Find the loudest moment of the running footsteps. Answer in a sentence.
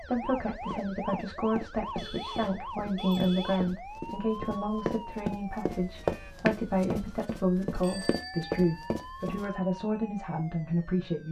The volume of the running footsteps peaks at 6 seconds.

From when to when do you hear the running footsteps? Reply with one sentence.
The running footsteps can be heard from 0.7 to 9.4 s.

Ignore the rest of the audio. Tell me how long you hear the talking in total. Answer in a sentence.
You can hear the talking for 11 seconds altogether.